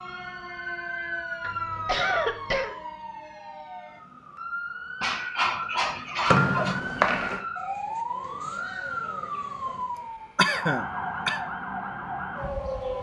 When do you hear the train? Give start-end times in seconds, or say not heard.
not heard.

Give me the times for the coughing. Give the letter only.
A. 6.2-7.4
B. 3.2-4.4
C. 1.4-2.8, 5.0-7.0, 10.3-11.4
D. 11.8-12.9
C.